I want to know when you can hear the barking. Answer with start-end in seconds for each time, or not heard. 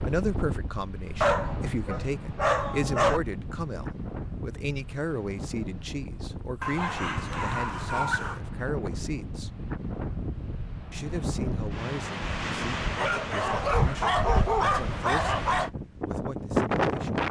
1.2-3.2, 6.6-8.4, 12.9-15.7.